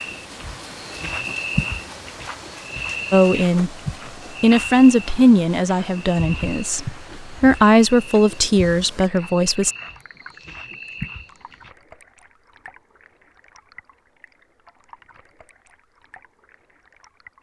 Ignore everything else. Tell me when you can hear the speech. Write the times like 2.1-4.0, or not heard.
3.1-3.7, 4.4-9.8.